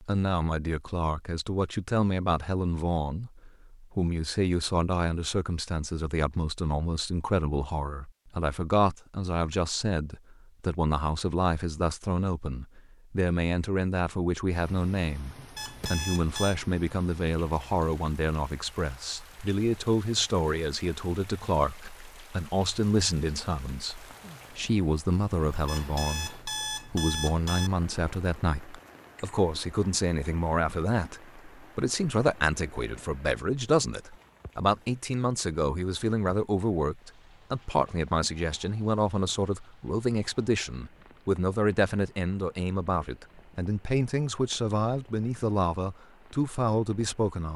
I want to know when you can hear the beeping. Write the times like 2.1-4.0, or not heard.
15.6-16.6, 25.6-27.7.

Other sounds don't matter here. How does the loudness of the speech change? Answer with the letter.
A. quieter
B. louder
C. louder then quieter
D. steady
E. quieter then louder
D.